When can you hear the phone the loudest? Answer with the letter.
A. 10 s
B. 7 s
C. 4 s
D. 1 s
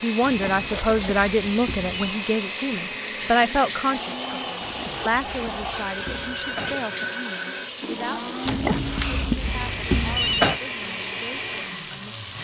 A.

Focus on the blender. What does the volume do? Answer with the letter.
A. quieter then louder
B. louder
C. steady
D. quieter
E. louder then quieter
C.